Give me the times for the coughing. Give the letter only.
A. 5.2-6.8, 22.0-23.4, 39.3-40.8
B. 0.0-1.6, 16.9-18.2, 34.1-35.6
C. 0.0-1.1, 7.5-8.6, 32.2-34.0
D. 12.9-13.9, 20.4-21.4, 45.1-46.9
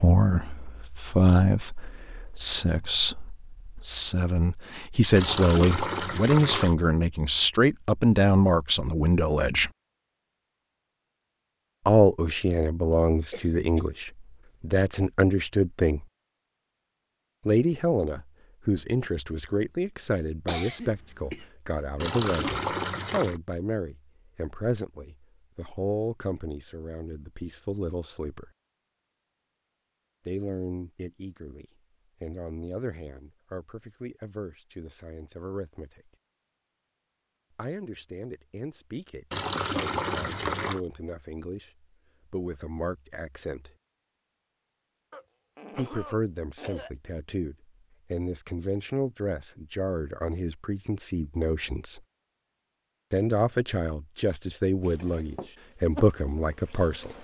D.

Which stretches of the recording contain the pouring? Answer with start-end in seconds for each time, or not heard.
5.2-6.8, 22.0-23.4, 39.3-40.8.